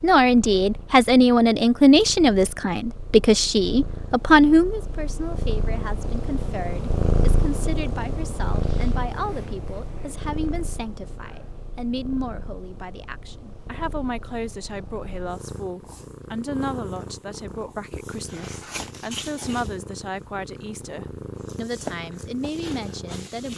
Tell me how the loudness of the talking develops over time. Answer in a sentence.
The loudness of the talking goes down.